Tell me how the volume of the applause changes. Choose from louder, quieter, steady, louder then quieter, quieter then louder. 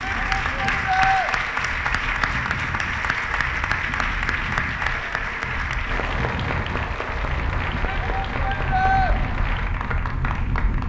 quieter.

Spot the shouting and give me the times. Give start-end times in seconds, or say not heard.
0.0-1.3, 7.8-9.2.